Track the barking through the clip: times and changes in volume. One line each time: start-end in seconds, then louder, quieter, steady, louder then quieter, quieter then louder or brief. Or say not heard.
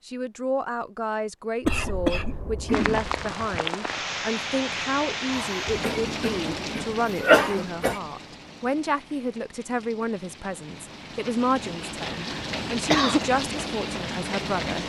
not heard.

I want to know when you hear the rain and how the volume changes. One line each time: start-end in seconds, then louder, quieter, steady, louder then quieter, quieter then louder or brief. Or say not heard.
2.7-14.8 quieter then louder.